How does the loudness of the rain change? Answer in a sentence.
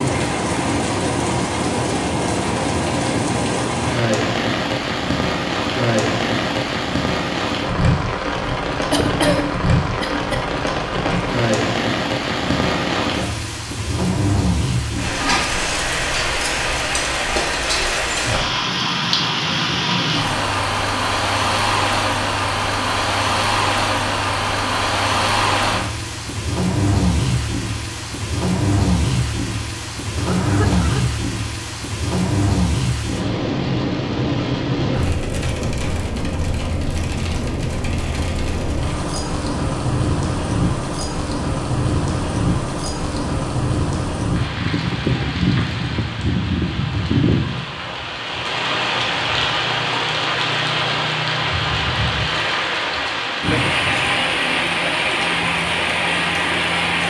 The loudness of the rain stays about the same.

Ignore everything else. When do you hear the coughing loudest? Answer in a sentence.
The loudest moment of the coughing is at 9 seconds.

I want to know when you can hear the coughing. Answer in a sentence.
You can hear the coughing from 8.9 to 10.4 s and from 30.1 to 31.1 s.